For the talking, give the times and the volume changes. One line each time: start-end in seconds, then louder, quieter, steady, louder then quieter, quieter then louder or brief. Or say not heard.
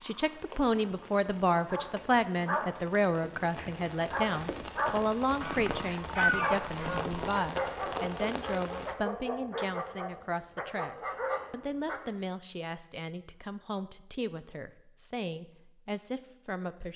0.0-16.9 quieter.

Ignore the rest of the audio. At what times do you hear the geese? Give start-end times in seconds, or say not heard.
5.4-7.3.